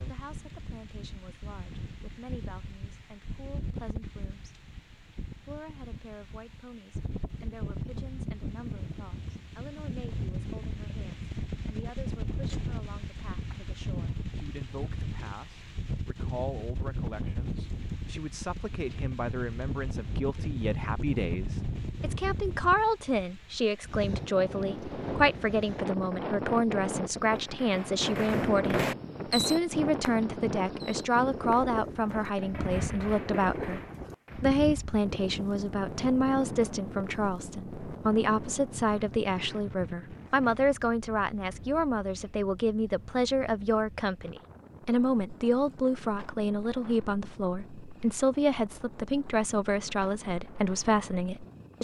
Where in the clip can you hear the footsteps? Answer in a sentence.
You can't hear the footsteps here.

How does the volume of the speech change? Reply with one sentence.
The volume of the speech goes up.